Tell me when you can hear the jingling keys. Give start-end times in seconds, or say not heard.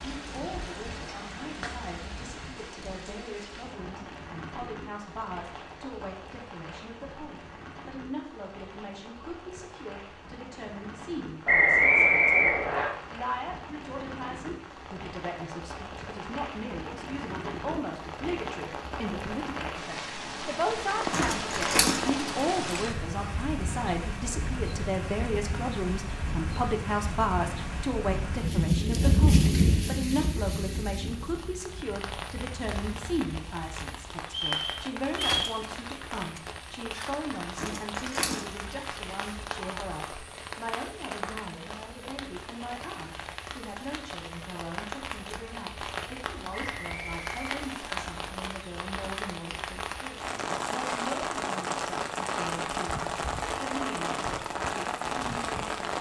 21.1-22.8, 37.5-38.9.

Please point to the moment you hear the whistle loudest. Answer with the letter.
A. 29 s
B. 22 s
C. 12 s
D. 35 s
C.